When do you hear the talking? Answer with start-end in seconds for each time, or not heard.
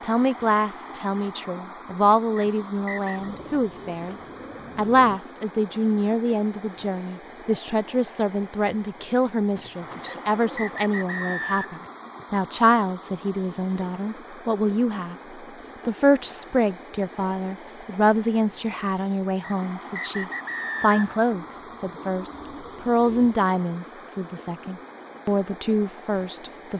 0.0-4.2, 4.8-15.2, 15.8-26.7.